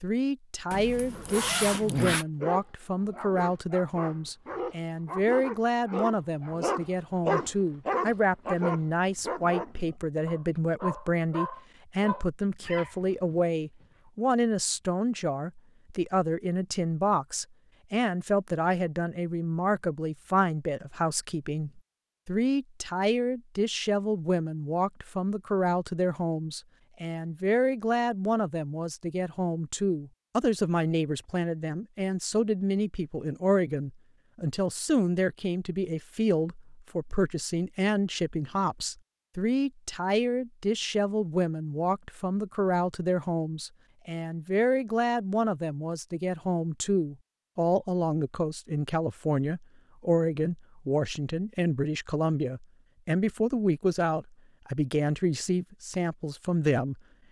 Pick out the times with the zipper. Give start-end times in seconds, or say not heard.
0.7-2.2.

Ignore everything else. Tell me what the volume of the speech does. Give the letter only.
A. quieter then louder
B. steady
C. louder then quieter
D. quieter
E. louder
B.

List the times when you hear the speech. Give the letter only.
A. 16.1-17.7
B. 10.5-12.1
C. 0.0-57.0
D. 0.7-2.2
C.